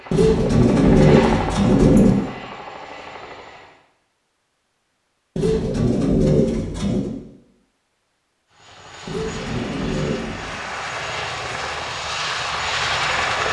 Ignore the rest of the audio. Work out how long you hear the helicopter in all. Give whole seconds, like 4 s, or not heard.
9 s.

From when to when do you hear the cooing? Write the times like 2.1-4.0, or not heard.
0.1-2.1, 5.3-7.1, 9.1-10.6.